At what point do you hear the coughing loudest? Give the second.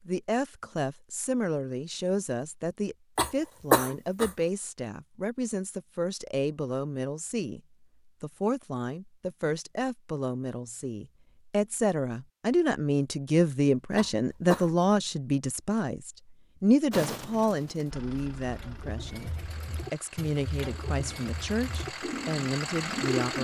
4 s.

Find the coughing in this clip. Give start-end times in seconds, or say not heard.
3.1-4.3, 13.9-14.8.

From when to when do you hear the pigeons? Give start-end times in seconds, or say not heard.
16.9-23.4.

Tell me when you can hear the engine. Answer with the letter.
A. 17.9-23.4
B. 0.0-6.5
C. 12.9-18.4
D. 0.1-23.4
A.